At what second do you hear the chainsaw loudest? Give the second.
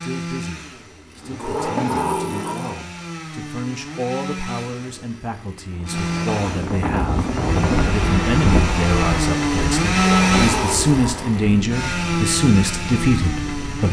10 s.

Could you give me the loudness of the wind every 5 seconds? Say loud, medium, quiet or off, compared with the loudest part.
off, loud, medium.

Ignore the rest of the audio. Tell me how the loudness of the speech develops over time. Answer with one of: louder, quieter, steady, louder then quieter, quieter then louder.
louder.